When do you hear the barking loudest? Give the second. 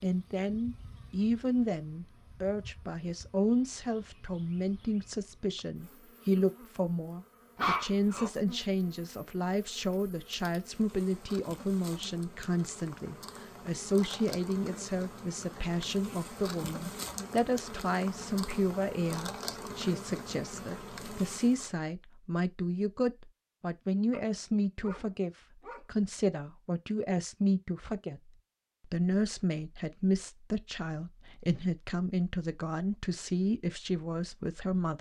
8 s.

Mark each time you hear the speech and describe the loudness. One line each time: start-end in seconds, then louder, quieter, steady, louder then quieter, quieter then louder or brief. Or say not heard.
0.0-34.9 steady.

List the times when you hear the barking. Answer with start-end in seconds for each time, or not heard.
7.5-8.3, 24.1-25.8.